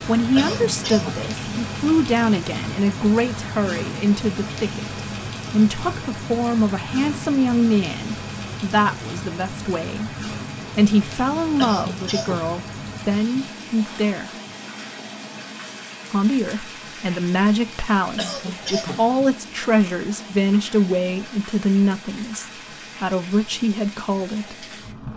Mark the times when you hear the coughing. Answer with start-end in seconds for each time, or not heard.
0.3-1.2, 11.6-12.4, 18.1-19.1.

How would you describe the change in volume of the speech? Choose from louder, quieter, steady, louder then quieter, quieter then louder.
steady.